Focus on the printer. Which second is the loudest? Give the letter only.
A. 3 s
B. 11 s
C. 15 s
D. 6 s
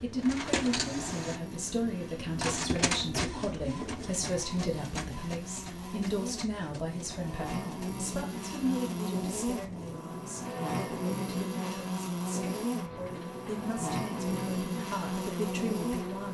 A.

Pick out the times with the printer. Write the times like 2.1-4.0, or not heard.
0.0-16.2.